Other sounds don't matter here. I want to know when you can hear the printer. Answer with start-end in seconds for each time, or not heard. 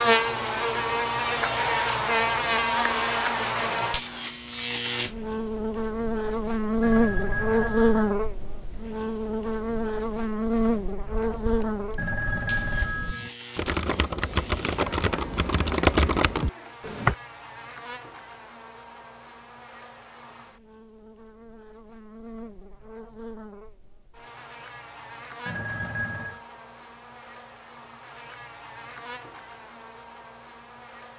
not heard.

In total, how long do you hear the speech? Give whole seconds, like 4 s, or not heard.
not heard.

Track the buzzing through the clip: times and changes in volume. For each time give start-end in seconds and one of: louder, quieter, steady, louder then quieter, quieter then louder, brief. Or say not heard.
0.0-31.1 quieter.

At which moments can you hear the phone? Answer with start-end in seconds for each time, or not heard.
6.8-8.2, 11.9-13.3, 25.4-26.4.